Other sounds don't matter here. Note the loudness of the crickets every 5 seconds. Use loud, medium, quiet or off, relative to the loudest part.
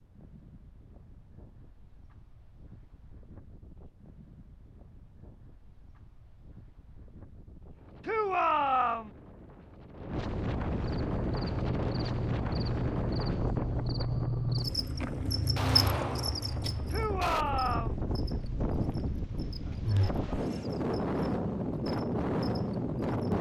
off, off, loud, loud, medium.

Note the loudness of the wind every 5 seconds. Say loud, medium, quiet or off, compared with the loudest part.
quiet, quiet, loud, medium, loud.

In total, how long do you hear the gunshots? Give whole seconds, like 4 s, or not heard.
2 s.